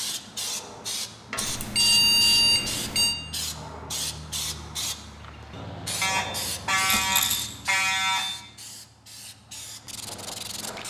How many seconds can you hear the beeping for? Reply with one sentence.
The beeping can be heard for 4 seconds in total.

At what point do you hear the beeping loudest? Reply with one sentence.
The loudest moment of the beeping is at 2 seconds.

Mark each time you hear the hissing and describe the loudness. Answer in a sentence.
The hissing can be heard from 0.0 to 10.8 s, getting quieter.